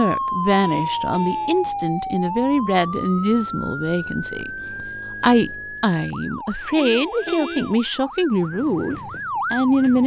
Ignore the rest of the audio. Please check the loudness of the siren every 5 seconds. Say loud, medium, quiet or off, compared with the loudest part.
loud, medium.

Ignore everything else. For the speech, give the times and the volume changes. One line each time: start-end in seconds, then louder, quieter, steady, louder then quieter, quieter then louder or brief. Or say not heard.
0.0-10.0 steady.